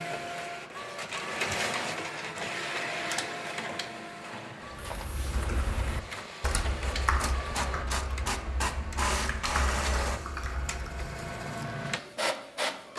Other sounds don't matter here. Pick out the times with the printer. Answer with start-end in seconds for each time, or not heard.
0.0-12.9.